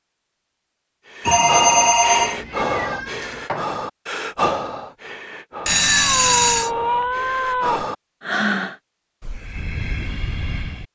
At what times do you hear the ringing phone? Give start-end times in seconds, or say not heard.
1.2-2.4, 5.7-6.7.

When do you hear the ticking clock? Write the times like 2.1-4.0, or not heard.
not heard.